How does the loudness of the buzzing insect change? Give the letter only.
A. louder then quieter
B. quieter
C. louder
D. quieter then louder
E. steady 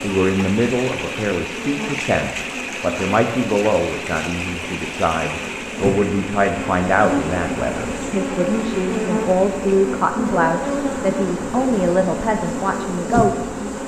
C.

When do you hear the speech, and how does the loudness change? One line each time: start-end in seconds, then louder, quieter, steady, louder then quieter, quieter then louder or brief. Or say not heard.
0.0-13.6 steady.